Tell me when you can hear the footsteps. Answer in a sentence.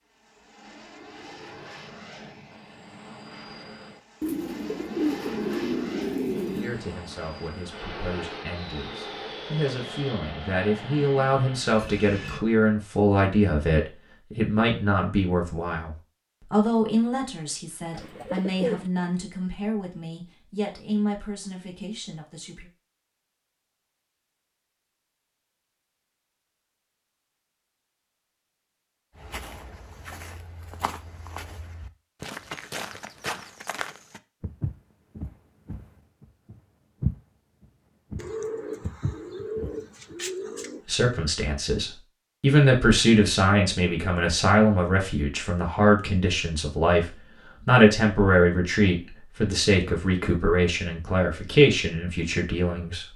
The footsteps can be heard from 29.1 to 40.1 s.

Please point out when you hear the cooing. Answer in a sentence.
The cooing can be heard from 4.2 to 6.8 s, from 17.9 to 18.9 s and from 38.1 to 40.9 s.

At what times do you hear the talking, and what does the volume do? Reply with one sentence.
You can hear the talking from 6.5 to 22.7 s, getting louder then quieter; and from 40.9 to 53.1 s, at a steady volume.